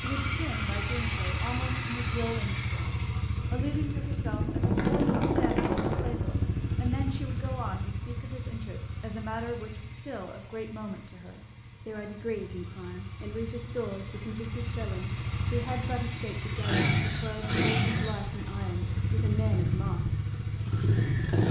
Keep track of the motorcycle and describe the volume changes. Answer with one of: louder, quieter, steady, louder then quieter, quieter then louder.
quieter then louder.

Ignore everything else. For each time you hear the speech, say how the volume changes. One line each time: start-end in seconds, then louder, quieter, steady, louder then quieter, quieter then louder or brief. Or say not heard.
0.0-20.1 steady.